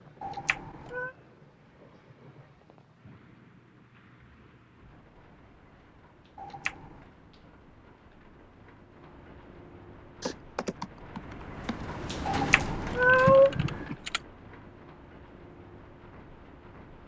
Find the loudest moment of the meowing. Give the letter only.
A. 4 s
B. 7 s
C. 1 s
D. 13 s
D.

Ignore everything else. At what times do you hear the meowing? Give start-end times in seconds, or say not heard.
0.2-1.1, 6.3-7.0, 12.2-13.9.